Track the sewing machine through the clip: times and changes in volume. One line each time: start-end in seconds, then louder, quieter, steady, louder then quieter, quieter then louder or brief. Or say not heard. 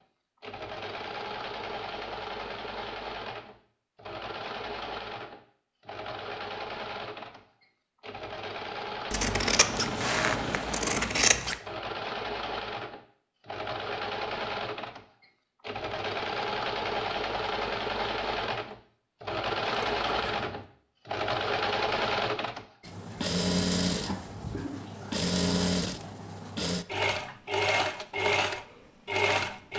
0.4-29.7 louder.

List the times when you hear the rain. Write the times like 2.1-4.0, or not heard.
not heard.